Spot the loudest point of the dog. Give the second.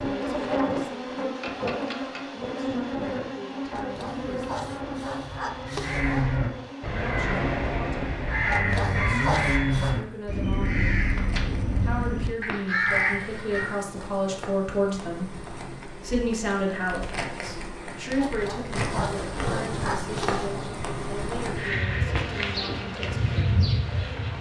9 s.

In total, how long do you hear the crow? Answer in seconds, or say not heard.
8 s.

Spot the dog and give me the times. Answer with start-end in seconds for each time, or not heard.
3.7-6.2, 8.4-10.0, 18.1-20.6.